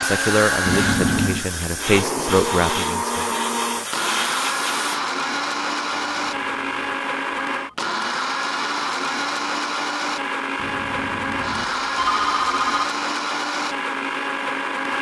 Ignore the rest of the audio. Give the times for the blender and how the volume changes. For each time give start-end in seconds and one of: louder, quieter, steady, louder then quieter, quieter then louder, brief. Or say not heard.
0.0-14.9 steady.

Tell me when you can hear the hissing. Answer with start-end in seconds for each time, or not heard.
0.0-5.0.